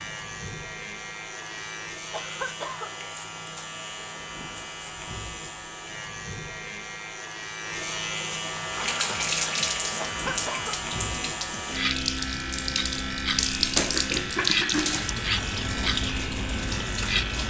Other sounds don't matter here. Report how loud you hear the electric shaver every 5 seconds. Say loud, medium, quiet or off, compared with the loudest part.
medium, loud, loud, loud.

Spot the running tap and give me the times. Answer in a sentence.
The running tap can be heard from 8.6 to 17.4 s.